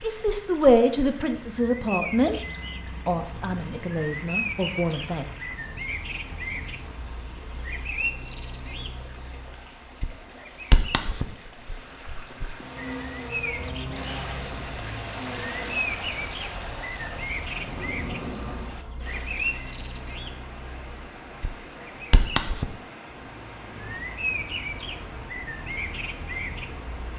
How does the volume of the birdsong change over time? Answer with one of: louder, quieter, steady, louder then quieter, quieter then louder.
steady.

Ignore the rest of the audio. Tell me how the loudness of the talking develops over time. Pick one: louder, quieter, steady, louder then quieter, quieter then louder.
quieter.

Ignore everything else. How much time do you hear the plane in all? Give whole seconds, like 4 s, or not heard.
6 s.